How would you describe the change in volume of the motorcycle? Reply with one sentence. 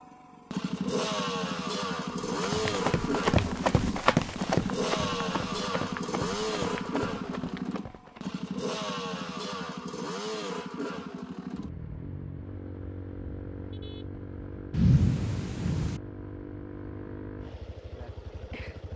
The volume of the motorcycle goes down.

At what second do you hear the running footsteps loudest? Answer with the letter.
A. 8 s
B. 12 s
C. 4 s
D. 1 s
C.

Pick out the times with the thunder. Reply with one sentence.
The thunder can be heard from 14.7 to 16.0 s.